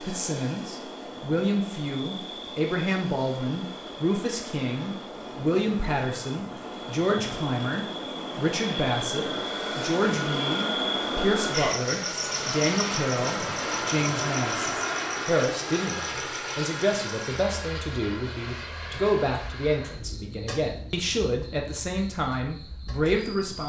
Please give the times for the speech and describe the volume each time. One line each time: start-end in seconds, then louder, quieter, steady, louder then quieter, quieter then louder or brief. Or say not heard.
0.0-23.6 steady.